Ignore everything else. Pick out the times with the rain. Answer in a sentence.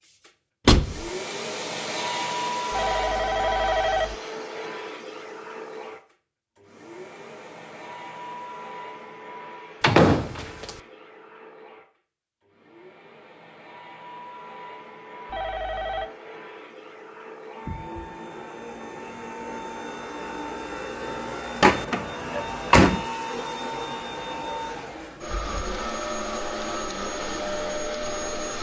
The rain can't be heard in this clip.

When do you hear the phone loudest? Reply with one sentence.
The loudest moment of the phone is at 4 seconds.